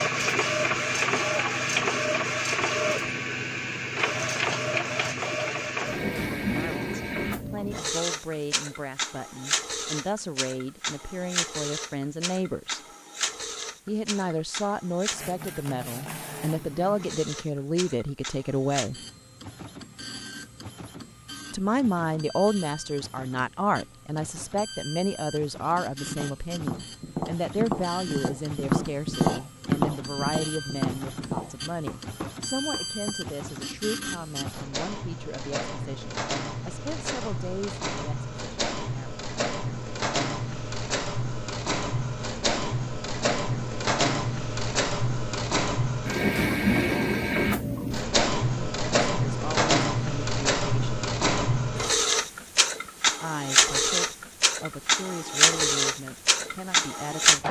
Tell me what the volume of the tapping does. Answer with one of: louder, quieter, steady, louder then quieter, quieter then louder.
louder then quieter.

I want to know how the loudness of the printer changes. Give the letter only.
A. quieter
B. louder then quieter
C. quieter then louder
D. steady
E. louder
C.